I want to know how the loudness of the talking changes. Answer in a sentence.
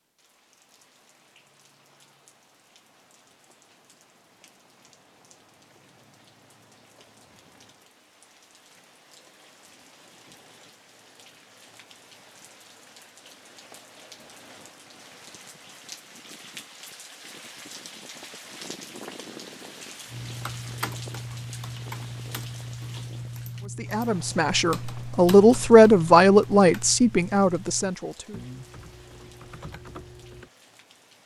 The volume of the talking goes up, then down.